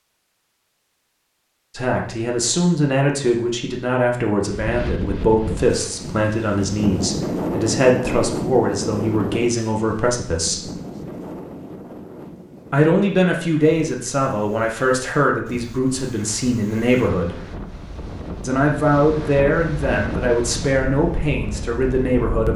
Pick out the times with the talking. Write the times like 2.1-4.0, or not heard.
1.8-10.7, 12.7-17.4, 18.4-22.5.